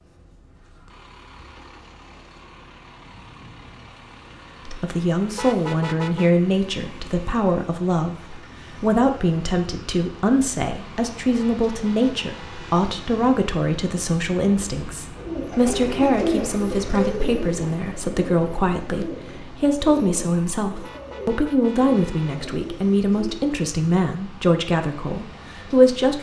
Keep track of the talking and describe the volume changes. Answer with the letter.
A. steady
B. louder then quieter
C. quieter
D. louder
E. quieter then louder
A.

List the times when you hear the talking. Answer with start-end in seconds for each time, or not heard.
4.7-26.1.